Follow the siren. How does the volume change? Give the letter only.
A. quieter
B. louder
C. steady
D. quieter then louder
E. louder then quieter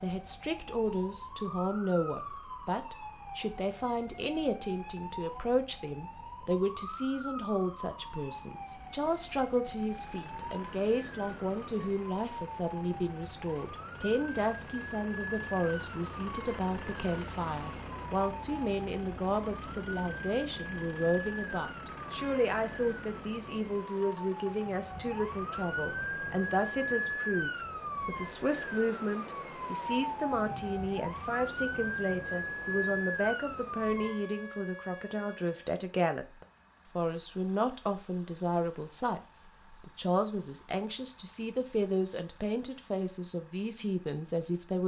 B.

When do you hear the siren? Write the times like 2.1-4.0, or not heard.
0.0-35.8.